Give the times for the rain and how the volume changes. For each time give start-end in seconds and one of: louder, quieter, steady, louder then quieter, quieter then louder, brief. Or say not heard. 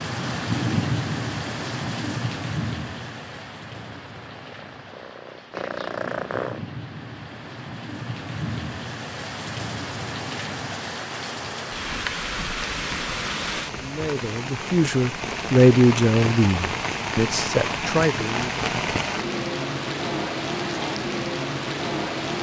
0.0-22.3 quieter then louder.